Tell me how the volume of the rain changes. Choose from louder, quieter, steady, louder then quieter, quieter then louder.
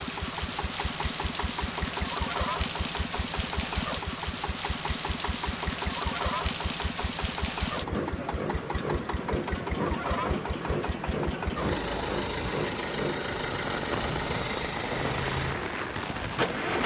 steady.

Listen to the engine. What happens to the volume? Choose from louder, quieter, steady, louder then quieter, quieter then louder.
steady.